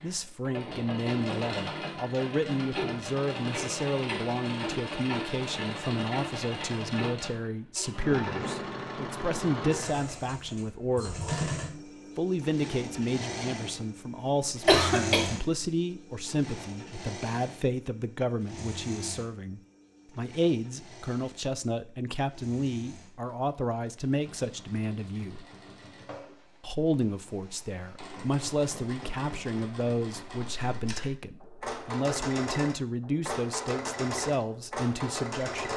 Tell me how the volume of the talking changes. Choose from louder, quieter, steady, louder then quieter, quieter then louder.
steady.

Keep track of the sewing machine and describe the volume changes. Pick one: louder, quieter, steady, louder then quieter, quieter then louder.
quieter then louder.